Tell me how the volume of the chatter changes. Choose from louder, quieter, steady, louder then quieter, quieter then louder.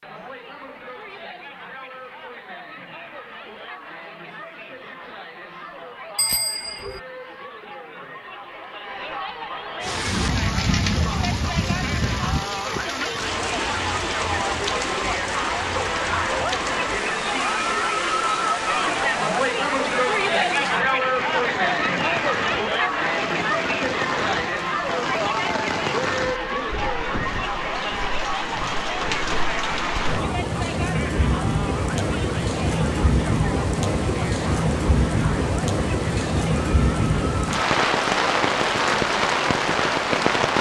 louder then quieter.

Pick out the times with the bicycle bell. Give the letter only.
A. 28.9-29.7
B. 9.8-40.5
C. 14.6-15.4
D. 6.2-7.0
D.